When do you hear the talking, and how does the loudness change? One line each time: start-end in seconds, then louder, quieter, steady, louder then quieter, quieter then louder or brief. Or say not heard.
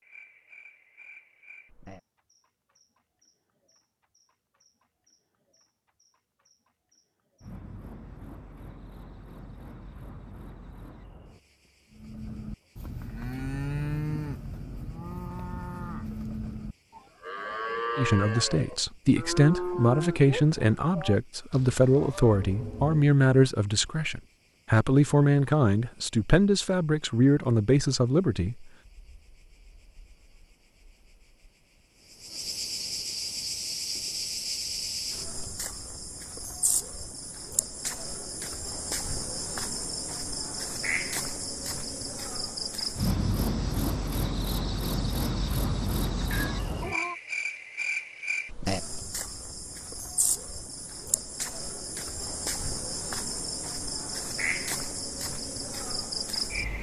17.9-28.6 steady.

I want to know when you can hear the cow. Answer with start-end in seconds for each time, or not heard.
11.9-22.4.